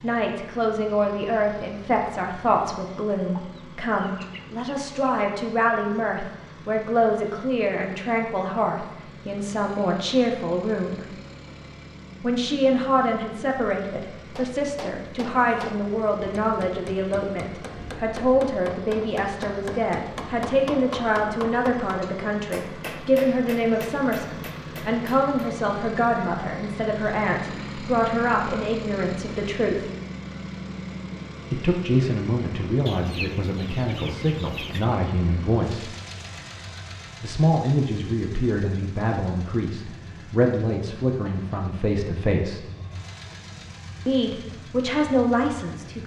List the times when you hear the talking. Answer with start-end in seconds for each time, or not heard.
0.0-11.1, 12.2-29.9, 31.5-35.9, 37.2-42.6, 44.0-46.0.